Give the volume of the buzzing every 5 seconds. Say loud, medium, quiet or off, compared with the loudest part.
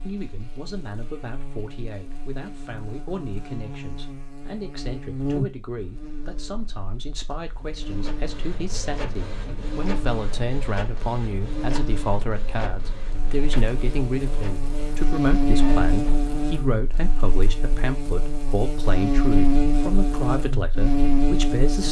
quiet, medium, medium, loud, loud.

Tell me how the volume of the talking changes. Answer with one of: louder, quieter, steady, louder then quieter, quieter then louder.
louder.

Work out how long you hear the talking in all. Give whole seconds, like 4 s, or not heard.
22 s.